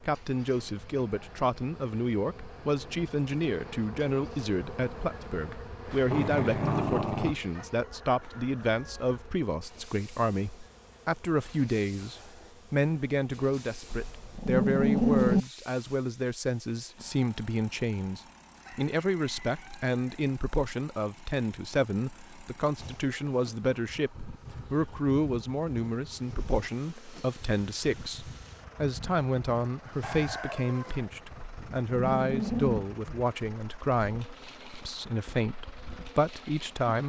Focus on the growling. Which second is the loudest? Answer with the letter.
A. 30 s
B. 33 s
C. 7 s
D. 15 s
D.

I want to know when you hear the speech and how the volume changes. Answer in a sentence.
You can hear the speech from 0.0 to 37.0 s, at a steady volume.